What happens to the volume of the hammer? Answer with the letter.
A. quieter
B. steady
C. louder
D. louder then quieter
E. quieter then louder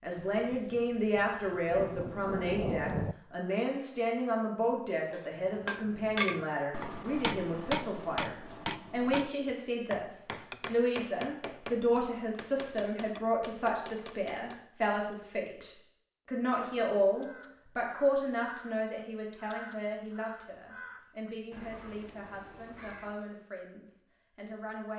A.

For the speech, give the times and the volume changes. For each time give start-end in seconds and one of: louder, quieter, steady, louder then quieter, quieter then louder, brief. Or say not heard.
0.0-24.9 quieter.